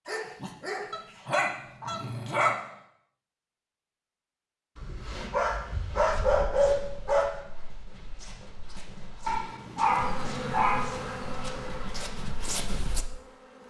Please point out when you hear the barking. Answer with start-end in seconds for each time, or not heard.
0.1-2.5, 5.3-7.3, 9.2-10.9.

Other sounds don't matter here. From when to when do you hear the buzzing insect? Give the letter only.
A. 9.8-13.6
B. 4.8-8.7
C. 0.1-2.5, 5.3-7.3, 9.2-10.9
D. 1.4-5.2
A.